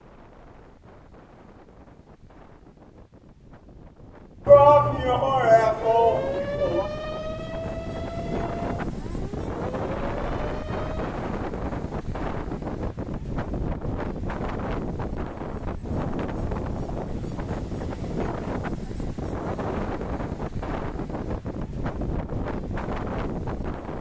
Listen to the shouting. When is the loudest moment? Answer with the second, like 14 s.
5 s.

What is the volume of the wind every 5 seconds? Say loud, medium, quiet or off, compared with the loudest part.
quiet, loud, loud, loud, loud.